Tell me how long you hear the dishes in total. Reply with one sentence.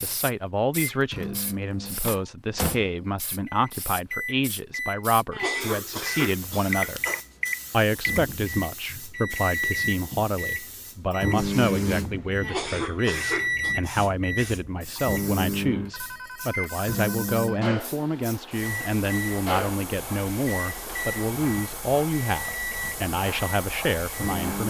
You can't hear the dishes here.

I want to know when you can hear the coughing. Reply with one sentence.
You can hear the coughing from 5.3 to 7.2 s and from 12.4 to 13.8 s.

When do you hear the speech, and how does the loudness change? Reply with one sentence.
The speech can be heard from 0.0 to 7.0 s, at a steady volume; and from 7.7 to 24.6 s, at a steady volume.